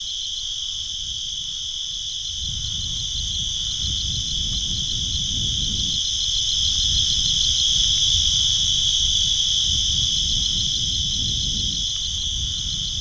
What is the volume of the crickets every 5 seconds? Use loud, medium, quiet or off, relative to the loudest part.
medium, loud, loud.